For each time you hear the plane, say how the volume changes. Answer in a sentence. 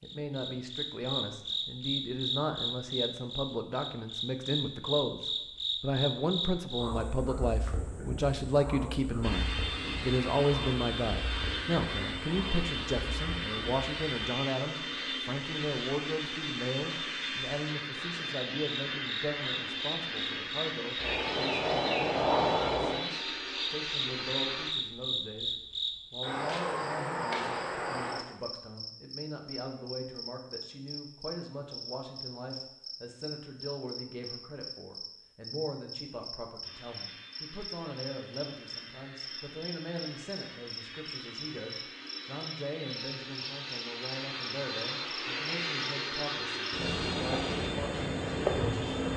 The plane can be heard from 9.2 to 24.8 s, at a steady volume; and from 36.6 to 49.1 s, getting louder.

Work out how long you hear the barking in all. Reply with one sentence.
The barking can't be heard in this clip.